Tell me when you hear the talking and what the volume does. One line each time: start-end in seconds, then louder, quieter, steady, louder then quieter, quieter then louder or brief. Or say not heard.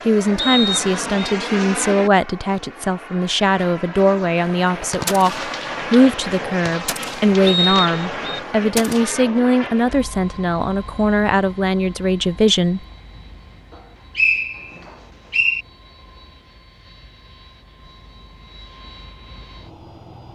0.1-12.8 steady.